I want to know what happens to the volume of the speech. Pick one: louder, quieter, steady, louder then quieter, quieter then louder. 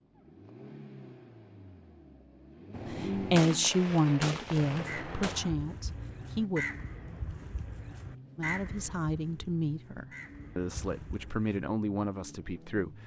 quieter.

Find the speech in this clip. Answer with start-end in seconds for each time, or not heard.
2.9-6.7, 8.3-13.0.